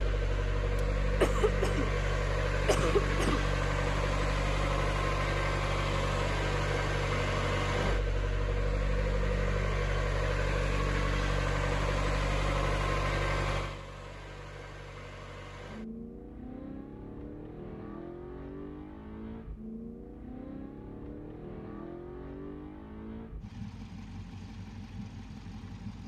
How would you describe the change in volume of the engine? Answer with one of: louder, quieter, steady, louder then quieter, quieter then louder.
quieter.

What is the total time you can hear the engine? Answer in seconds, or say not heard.
26 s.